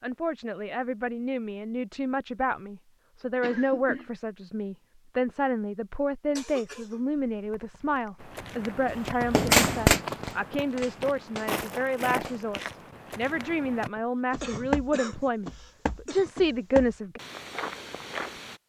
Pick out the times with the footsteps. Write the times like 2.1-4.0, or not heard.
8.2-18.6.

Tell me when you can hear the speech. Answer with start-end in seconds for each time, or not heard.
0.0-17.2.